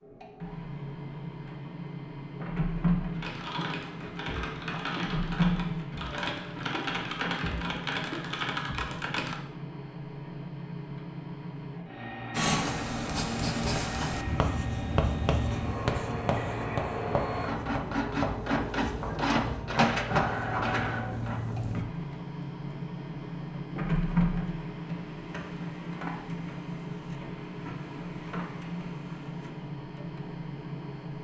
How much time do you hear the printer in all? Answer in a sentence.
The printer can be heard for 31 seconds in total.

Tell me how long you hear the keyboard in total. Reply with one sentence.
The keyboard can be heard for 6 seconds in total.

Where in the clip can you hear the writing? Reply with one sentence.
You can hear the writing from 12.3 to 21.9 s.